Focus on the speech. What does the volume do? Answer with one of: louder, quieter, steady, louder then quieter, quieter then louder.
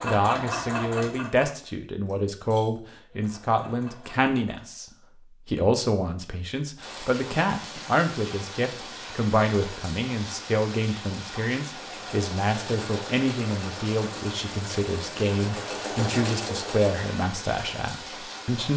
steady.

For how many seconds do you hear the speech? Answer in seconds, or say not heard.
18 s.